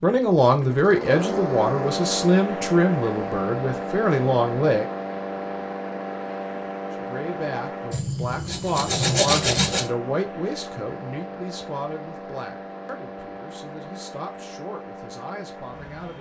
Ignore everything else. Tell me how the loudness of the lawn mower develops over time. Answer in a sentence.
The volume of the lawn mower goes down.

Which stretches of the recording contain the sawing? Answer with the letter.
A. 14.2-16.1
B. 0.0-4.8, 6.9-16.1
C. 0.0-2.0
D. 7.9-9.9
D.